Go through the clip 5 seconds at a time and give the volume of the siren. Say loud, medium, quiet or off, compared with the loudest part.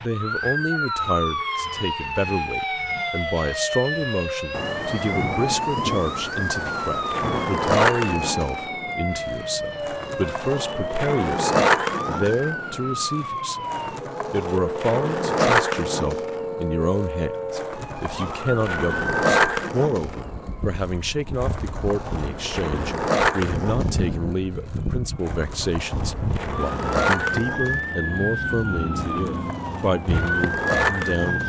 loud, loud, medium, medium, medium, loud, loud.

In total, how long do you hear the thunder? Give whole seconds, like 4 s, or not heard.
3 s.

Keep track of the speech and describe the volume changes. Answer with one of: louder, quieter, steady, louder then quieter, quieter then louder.
steady.